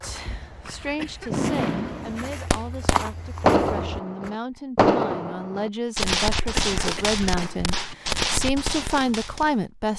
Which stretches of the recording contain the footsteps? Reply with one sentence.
The footsteps can be heard from 0.0 to 4.3 s.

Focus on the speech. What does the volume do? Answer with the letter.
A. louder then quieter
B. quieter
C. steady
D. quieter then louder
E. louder
E.